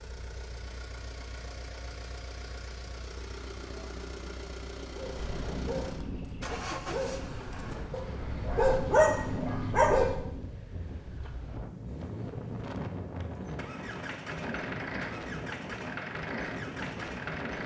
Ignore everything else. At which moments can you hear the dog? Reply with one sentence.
You can hear the dog from 4.9 to 10.2 s.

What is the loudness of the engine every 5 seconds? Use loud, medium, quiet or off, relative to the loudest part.
medium, loud, medium, loud.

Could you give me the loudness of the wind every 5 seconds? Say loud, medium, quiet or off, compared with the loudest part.
off, loud, loud, loud.